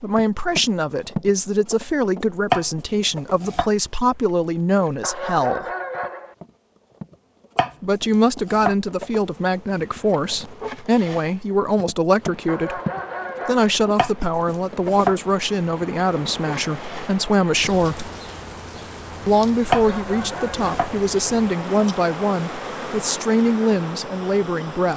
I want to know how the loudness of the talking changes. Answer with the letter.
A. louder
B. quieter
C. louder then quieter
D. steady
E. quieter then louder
D.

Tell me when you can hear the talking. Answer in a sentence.
You can hear the talking from 0.0 to 5.7 s, from 7.8 to 12.8 s, from 13.4 to 18.1 s and from 19.2 to 24.9 s.